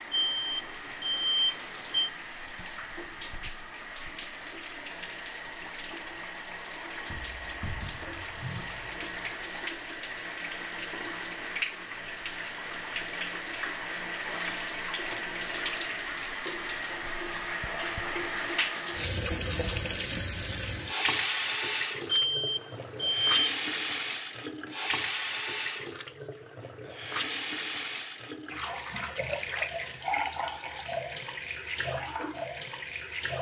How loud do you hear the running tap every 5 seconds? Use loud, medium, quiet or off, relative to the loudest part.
medium, medium, loud, loud, loud, loud, loud.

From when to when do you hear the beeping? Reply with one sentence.
The beeping can be heard from 0.1 to 2.1 s and from 22.1 to 23.4 s.